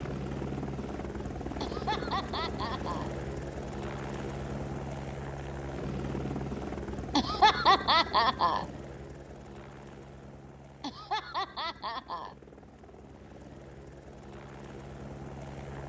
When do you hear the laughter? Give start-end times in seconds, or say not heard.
1.6-3.1, 7.2-8.7, 10.8-12.3.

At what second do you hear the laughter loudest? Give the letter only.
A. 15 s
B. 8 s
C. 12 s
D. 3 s
B.